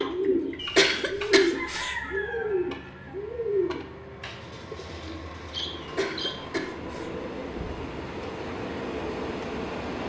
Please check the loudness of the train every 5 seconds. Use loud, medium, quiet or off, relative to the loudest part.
medium, loud.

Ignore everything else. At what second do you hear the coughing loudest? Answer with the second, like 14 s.
1 s.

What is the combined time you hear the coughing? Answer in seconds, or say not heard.
3 s.